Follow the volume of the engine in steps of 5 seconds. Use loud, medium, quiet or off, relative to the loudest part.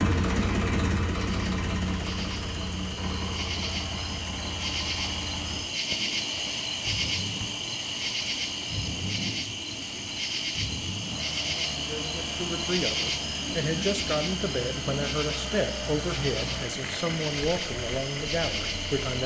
loud, medium, medium, medium.